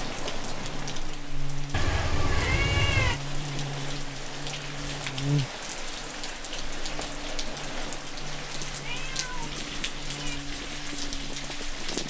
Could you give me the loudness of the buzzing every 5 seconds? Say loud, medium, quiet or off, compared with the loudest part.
loud, loud, medium.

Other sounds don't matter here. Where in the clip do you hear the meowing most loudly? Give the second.
3 s.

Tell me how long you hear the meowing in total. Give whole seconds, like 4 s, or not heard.
3 s.